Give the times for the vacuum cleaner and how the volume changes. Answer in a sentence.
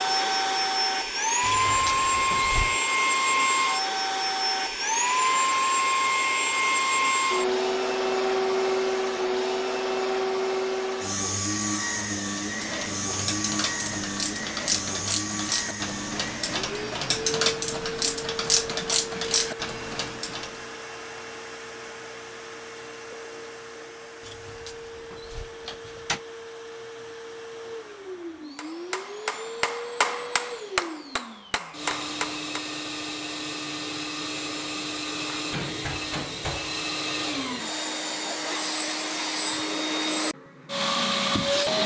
You can hear the vacuum cleaner from 0.0 to 41.8 s, getting quieter then louder.